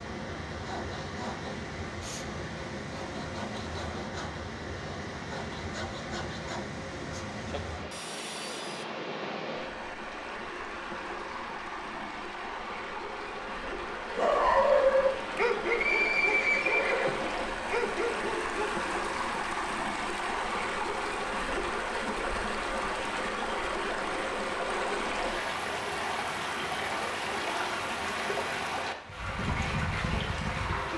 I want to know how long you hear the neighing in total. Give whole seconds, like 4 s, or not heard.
2 s.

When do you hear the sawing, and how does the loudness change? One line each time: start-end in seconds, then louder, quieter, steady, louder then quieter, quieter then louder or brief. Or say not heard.
0.5-8.8 steady.